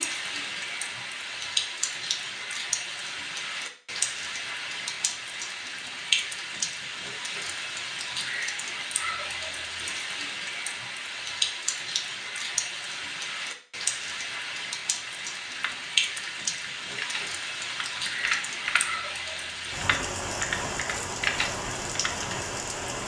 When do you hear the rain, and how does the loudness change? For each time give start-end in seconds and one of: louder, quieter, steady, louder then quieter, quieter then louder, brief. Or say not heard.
0.0-23.0 steady.